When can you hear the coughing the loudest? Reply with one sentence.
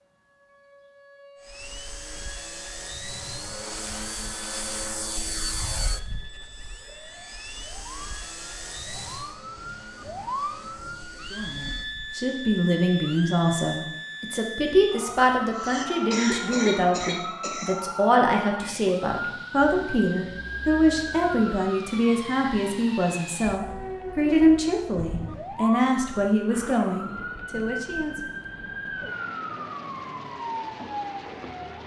The volume of the coughing peaks at 16 seconds.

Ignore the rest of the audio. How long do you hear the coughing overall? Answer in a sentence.
The coughing can be heard for 2 seconds in total.